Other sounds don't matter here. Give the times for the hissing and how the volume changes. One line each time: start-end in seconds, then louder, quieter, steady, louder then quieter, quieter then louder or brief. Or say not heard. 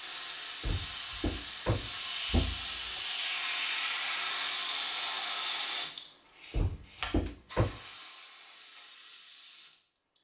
0.0-10.1 quieter.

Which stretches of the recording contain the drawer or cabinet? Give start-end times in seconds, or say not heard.
0.6-3.0, 6.5-7.8.